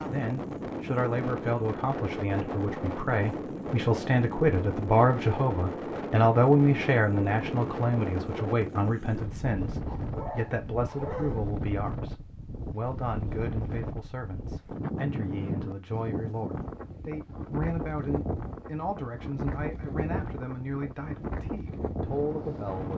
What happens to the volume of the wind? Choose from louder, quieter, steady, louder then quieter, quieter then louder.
steady.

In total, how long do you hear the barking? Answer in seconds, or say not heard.
2 s.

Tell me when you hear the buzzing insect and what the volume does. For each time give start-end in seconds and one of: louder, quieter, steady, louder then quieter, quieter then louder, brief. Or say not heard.
not heard.